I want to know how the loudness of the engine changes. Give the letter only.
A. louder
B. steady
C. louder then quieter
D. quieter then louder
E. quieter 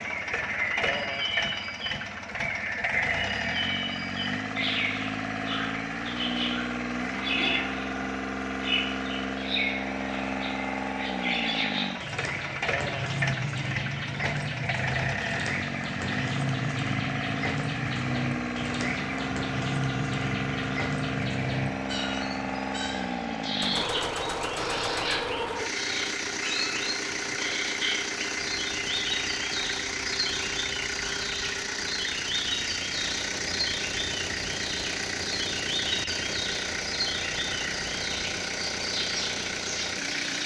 B.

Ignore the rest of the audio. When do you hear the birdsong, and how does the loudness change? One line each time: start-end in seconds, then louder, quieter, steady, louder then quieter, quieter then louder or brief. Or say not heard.
0.0-40.4 steady.